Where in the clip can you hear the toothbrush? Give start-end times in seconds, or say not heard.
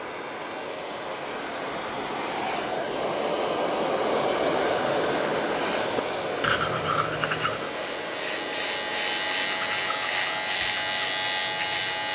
5.8-7.8, 9.6-12.0.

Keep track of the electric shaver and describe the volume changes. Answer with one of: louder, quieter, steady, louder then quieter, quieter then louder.
louder.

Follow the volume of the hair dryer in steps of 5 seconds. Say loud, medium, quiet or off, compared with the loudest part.
loud, loud, medium.